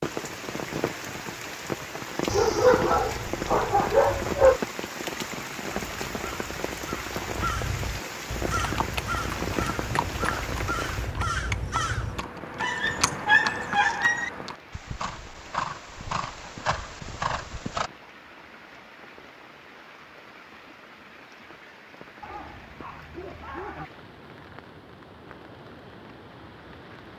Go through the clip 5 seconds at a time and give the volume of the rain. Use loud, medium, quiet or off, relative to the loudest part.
loud, loud, medium, quiet, quiet, quiet.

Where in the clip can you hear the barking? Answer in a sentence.
The barking can be heard from 2.2 to 4.6 s, from 12.6 to 14.3 s and from 22.2 to 23.9 s.